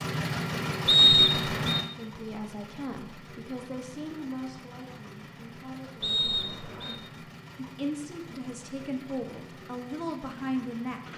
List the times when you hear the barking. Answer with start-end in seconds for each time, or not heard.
not heard.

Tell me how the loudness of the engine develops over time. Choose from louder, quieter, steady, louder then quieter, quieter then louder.
quieter.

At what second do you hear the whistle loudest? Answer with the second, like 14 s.
1 s.